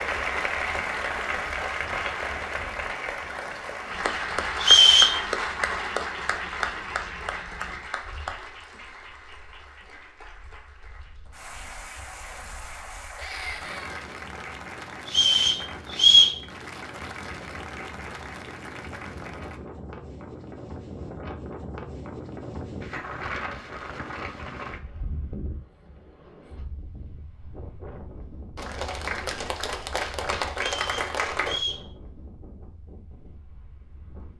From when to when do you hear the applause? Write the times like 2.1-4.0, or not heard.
0.0-19.6, 28.6-31.6.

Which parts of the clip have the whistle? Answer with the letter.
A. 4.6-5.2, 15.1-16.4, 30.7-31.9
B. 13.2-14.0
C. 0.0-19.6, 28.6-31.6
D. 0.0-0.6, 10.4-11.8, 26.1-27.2
A.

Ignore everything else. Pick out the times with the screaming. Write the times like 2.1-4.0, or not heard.
13.2-14.0.